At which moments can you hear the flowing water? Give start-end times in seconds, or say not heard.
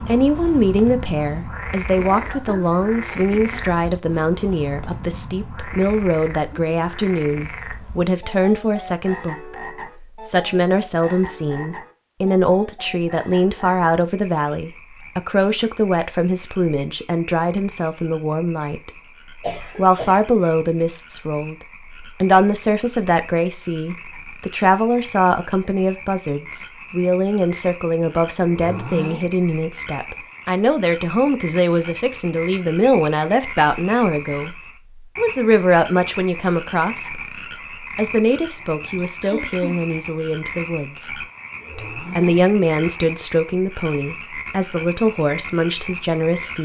not heard.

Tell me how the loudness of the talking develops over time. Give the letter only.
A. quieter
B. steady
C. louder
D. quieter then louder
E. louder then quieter
B.